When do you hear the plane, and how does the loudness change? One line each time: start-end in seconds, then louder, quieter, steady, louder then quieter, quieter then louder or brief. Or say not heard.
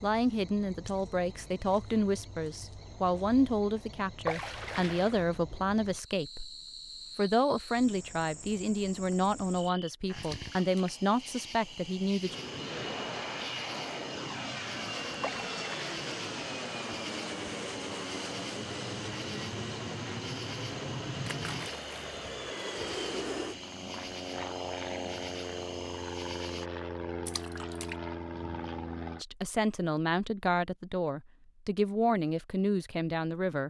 12.2-29.2 steady.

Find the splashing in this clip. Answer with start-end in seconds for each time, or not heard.
4.2-5.2, 10.2-10.9, 15.2-16.0, 21.2-22.1, 27.2-27.9.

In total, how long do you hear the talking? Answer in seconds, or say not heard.
16 s.